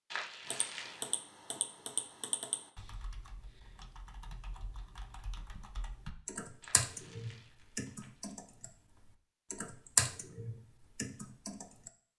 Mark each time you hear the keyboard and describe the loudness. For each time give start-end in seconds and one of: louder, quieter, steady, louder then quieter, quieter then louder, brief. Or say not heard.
0.5-11.9 quieter then louder.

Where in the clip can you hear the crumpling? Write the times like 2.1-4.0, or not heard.
0.1-1.1, 6.6-8.3.